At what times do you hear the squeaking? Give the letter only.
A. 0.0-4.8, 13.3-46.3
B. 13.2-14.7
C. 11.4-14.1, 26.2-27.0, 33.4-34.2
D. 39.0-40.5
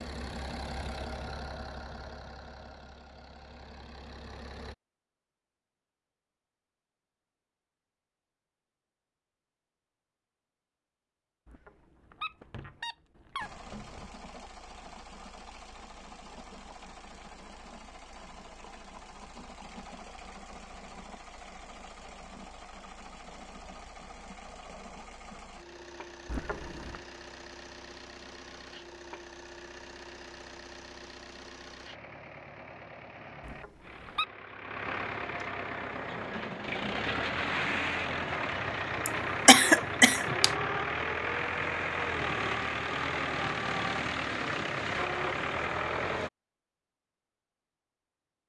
C.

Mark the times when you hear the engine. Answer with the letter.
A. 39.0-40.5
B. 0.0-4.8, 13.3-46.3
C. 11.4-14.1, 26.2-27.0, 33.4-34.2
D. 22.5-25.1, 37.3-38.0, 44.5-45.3
B.